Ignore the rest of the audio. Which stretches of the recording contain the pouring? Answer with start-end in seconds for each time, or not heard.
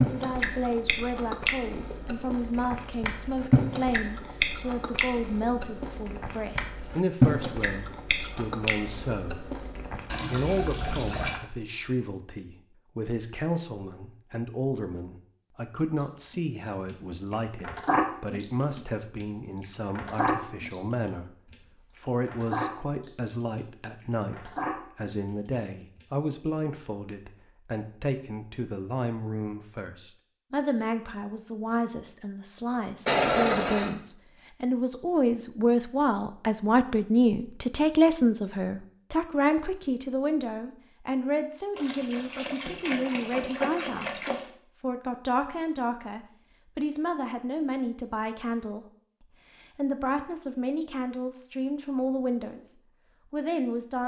10.1-11.4, 33.0-33.9, 41.8-44.5.